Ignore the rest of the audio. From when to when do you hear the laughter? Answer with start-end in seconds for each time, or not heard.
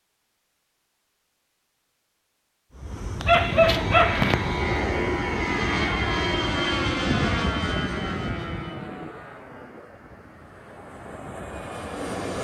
not heard.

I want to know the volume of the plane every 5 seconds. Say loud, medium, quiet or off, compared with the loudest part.
loud, loud, medium.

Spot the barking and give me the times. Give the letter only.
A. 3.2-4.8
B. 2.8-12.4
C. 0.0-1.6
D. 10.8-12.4
A.